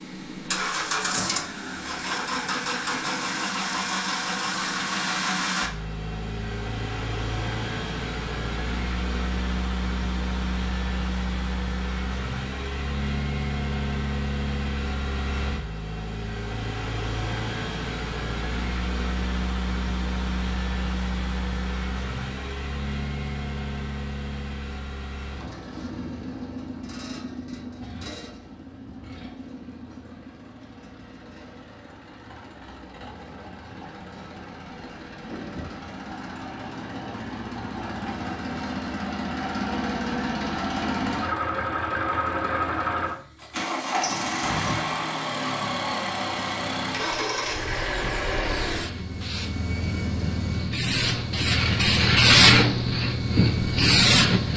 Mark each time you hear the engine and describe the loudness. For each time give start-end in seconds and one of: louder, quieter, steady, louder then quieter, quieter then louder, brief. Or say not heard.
0.0-54.5 quieter then louder.